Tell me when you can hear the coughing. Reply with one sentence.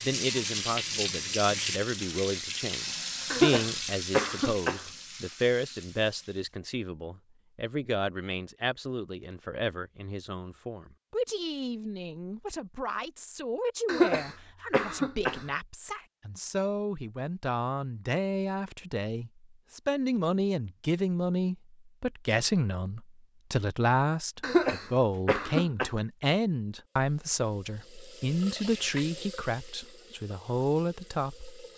The coughing can be heard from 3.3 to 4.8 s, from 13.8 to 15.4 s and from 24.4 to 25.9 s.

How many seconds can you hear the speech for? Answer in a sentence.
The speech can be heard for 32 seconds in total.